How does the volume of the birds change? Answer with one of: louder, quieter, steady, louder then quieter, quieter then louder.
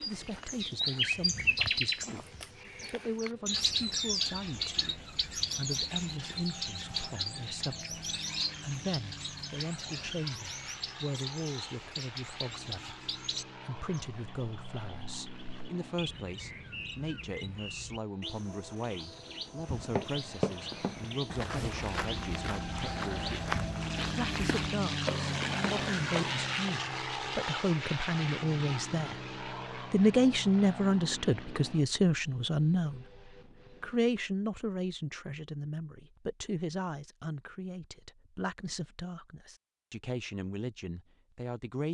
quieter.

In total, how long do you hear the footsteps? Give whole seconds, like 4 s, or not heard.
7 s.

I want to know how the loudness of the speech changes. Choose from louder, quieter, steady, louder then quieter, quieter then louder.
louder then quieter.